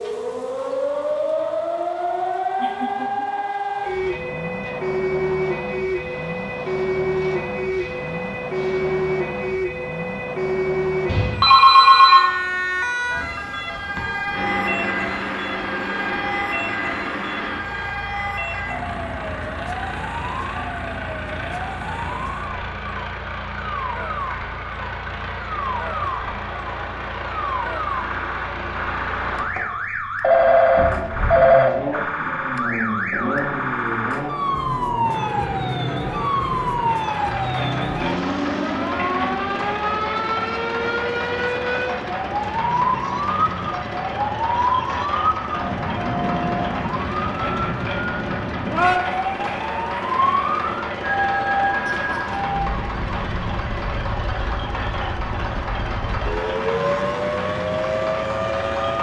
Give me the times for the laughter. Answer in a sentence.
You can hear the laughter from 2.5 to 4.1 s and from 51.9 to 52.4 s.